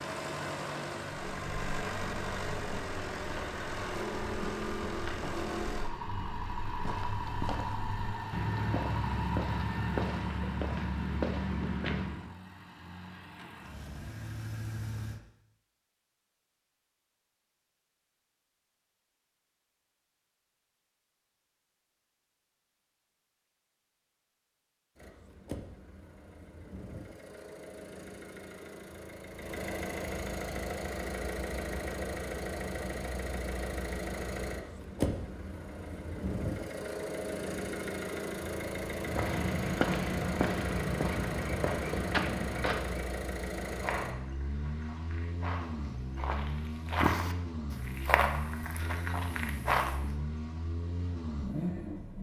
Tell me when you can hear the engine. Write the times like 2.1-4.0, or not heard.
0.0-15.2, 24.9-52.1.